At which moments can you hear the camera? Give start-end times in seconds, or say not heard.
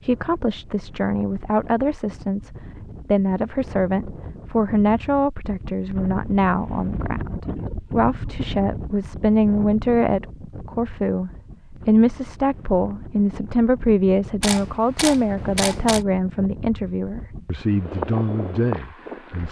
14.4-16.1.